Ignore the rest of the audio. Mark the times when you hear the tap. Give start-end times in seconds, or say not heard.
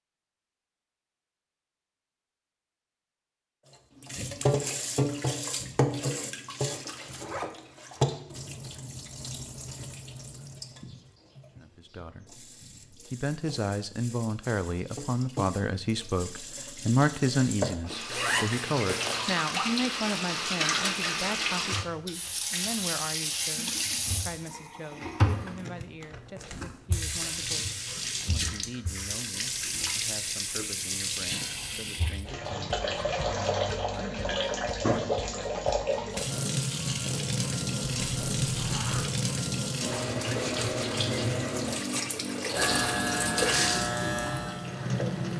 4.0-45.3.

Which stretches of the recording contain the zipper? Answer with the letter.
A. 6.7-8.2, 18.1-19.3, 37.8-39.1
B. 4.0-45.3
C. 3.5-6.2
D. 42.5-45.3
A.